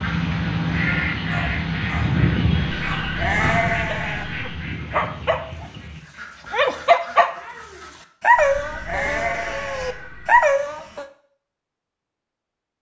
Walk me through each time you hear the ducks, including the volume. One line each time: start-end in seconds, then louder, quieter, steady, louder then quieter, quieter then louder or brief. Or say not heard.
0.0-8.1 quieter.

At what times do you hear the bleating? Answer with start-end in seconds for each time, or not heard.
2.7-4.5, 8.3-10.4.